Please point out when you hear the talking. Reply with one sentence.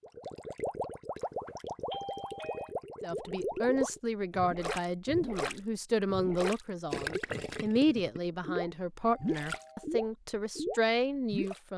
You can hear the talking from 3.0 to 11.7 s.